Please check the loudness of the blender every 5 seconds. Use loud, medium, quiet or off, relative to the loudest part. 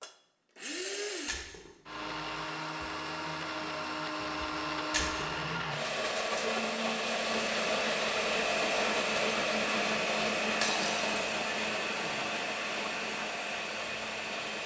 medium, loud, loud.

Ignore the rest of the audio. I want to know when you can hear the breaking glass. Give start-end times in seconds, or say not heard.
1.2-1.7, 4.9-5.3, 10.6-11.3.